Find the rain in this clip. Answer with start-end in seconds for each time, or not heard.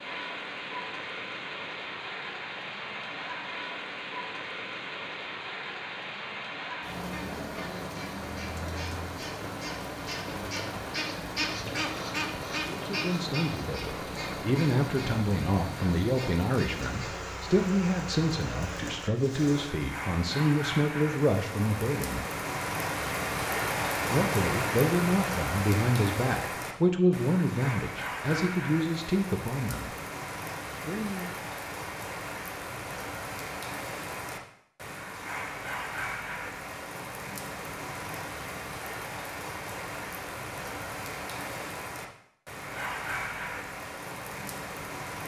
0.0-45.2.